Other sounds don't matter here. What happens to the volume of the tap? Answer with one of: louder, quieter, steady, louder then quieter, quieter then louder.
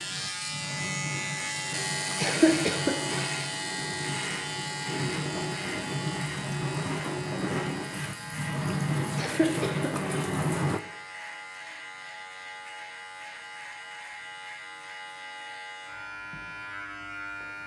louder.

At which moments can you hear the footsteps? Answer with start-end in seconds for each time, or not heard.
not heard.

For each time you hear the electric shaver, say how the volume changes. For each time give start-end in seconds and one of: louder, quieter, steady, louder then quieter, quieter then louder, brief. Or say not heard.
0.0-17.6 quieter.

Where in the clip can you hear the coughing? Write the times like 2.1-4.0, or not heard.
2.2-3.3, 9.2-10.1.